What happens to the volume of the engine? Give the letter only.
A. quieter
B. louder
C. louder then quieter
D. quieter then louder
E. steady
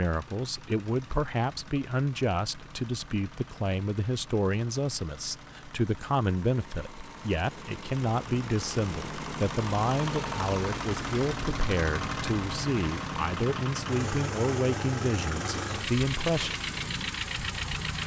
B.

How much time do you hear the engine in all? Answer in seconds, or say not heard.
18 s.